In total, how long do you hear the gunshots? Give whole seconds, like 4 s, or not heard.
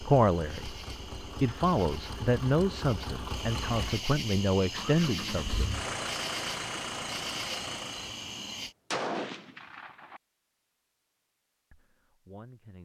2 s.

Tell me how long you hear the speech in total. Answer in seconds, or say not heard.
7 s.